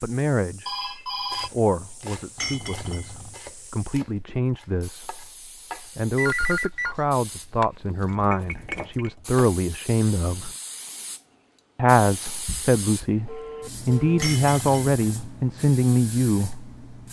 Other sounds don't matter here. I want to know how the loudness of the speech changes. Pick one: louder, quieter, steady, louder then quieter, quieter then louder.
louder.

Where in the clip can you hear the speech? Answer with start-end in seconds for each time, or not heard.
0.0-10.5, 11.8-16.7.